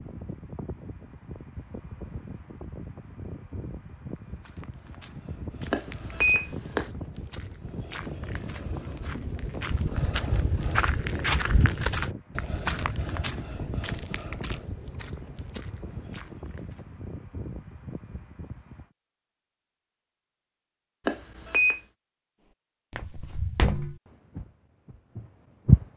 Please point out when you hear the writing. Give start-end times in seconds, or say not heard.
not heard.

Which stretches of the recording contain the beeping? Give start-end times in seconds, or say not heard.
5.7-6.9, 21.1-21.8.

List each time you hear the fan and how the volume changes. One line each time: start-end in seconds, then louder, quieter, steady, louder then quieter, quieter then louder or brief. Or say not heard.
0.0-18.9 steady.